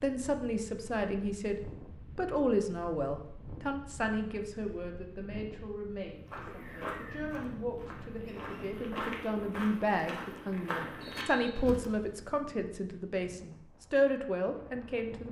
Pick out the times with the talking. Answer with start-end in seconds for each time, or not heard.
0.0-15.2.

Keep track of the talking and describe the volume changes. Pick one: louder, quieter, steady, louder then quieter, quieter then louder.
quieter then louder.